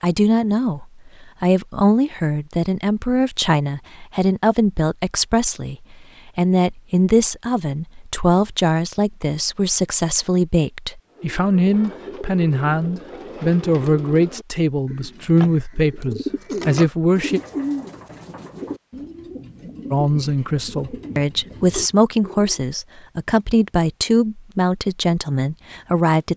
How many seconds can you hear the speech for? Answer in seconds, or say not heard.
24 s.